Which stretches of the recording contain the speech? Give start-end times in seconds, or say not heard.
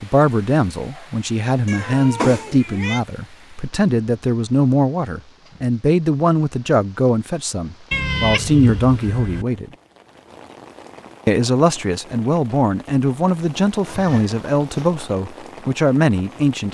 0.0-9.7, 11.2-16.6.